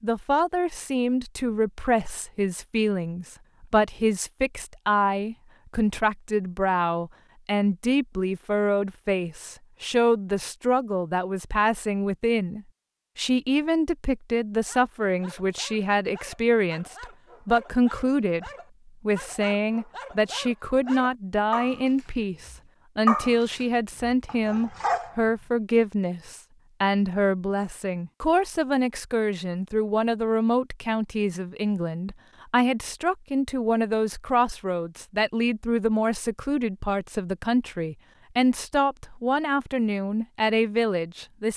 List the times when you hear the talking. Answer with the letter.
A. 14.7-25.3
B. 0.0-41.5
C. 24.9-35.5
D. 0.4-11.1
B.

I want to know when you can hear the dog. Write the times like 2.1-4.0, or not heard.
14.7-25.3.